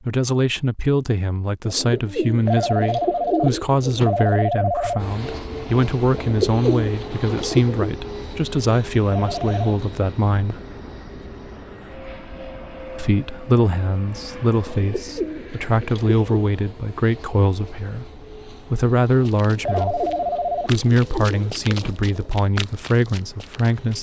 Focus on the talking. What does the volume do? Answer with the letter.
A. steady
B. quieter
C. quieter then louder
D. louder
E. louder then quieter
A.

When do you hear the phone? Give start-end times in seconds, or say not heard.
2.5-5.0, 9.1-9.7, 19.6-20.7.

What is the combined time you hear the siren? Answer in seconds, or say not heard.
not heard.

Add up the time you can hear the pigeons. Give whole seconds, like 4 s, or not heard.
9 s.